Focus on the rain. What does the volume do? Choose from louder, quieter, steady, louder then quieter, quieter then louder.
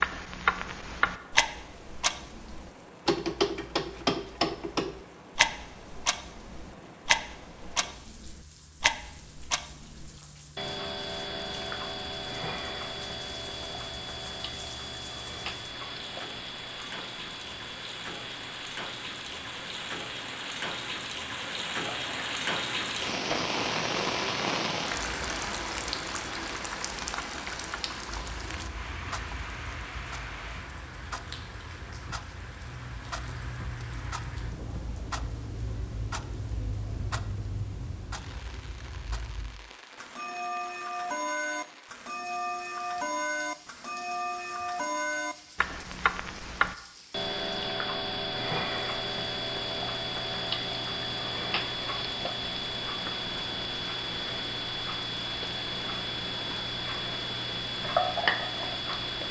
louder then quieter.